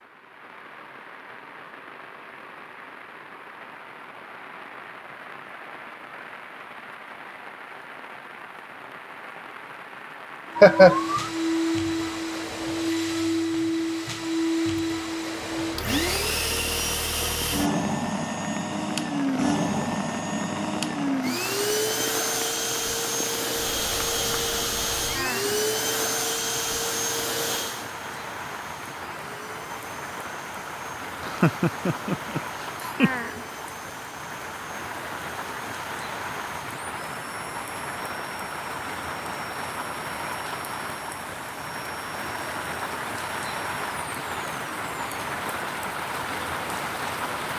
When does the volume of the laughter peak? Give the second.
11 s.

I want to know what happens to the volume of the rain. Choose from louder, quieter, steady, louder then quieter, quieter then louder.
louder.